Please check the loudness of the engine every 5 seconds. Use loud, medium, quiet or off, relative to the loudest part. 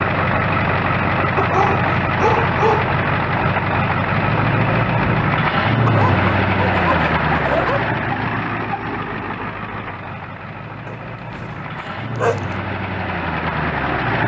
loud, loud, medium.